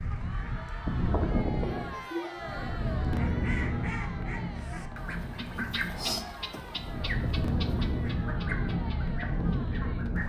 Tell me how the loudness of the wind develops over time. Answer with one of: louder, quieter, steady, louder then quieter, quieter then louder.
quieter then louder.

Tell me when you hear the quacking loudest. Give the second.
6 s.